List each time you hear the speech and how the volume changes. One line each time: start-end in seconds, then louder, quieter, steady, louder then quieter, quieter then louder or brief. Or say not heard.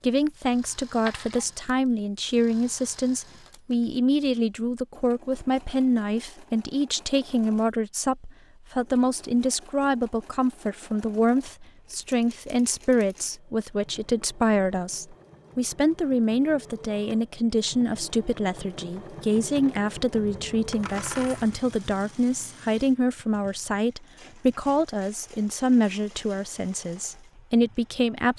0.0-28.3 steady.